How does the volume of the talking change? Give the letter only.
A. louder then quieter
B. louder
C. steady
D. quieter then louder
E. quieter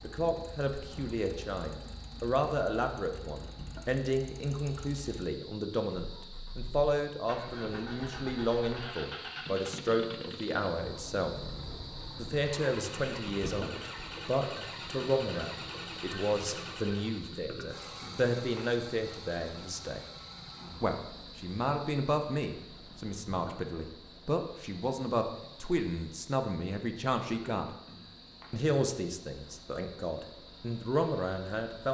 C.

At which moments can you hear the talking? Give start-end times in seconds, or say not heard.
0.0-11.3, 12.2-20.1, 20.8-27.7, 28.5-31.8.